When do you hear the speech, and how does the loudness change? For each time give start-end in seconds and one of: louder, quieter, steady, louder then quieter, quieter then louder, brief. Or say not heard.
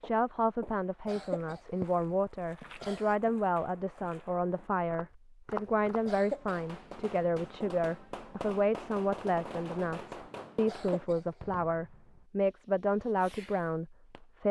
0.0-14.4 steady.